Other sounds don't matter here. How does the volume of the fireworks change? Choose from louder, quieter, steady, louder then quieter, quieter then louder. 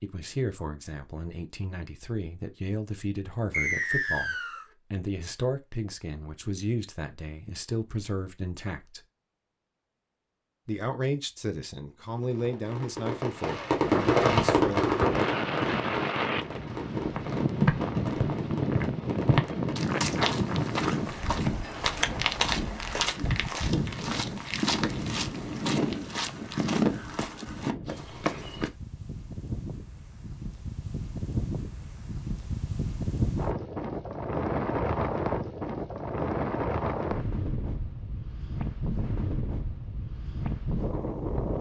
louder then quieter.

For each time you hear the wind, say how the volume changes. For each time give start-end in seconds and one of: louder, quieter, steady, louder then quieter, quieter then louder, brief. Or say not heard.
13.8-41.5 quieter then louder.